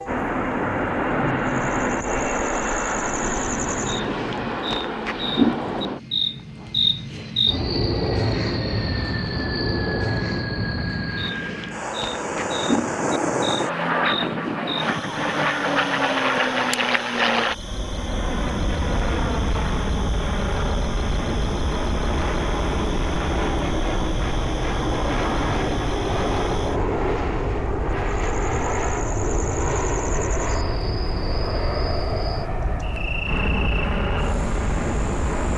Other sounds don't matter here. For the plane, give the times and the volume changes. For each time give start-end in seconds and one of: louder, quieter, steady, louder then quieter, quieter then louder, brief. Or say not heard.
0.0-35.5 steady.